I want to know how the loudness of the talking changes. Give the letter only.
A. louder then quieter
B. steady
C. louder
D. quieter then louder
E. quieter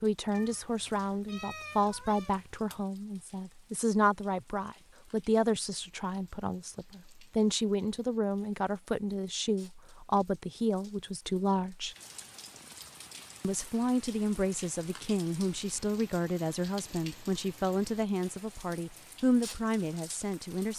B.